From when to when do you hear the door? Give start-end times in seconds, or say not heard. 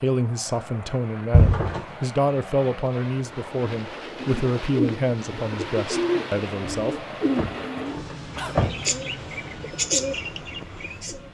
1.3-1.8, 6.7-8.8.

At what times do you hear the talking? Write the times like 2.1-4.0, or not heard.
0.0-7.0.